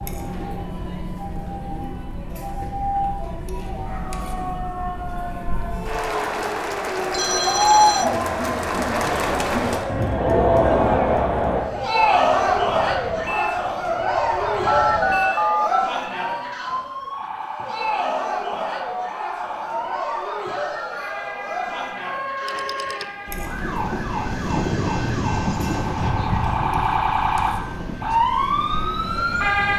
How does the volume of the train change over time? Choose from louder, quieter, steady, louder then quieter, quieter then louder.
quieter.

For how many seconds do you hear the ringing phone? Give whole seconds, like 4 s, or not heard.
3 s.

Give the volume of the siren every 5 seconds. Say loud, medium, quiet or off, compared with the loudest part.
medium, medium, medium, medium, medium, loud.